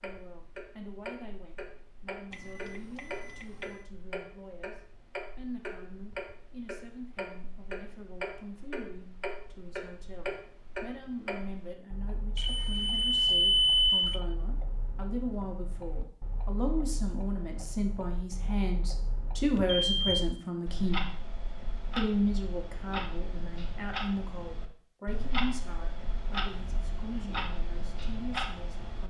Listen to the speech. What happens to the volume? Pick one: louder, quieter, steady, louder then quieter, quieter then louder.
louder then quieter.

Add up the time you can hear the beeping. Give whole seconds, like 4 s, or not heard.
4 s.